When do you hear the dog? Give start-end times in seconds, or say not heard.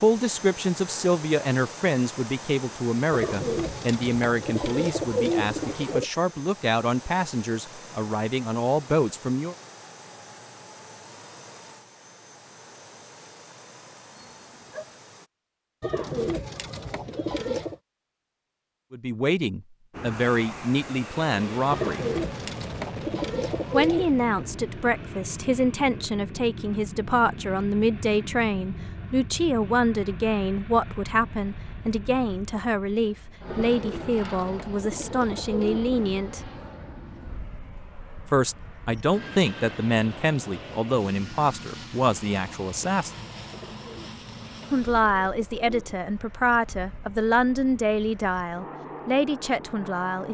14.2-15.0.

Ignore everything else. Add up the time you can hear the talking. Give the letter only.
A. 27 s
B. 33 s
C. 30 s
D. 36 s
D.